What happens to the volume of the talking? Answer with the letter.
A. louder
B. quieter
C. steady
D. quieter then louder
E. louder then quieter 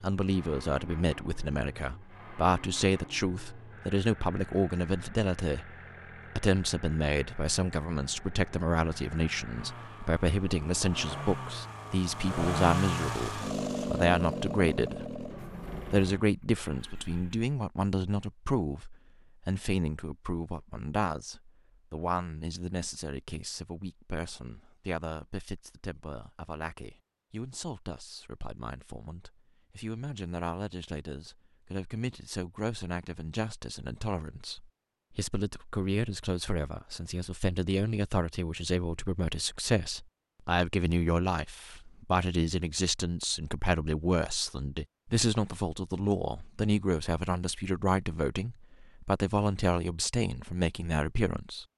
D.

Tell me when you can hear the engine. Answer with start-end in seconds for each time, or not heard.
0.1-17.5.